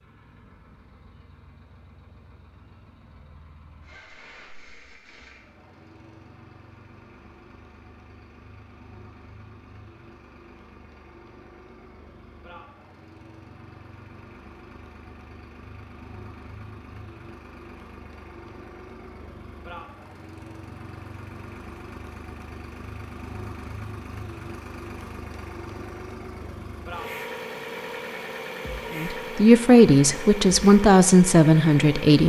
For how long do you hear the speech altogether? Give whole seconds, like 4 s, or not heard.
3 s.